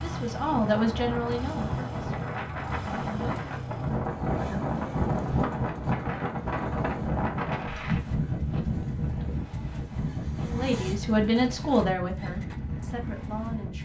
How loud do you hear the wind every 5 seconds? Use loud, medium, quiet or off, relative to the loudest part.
loud, loud, medium.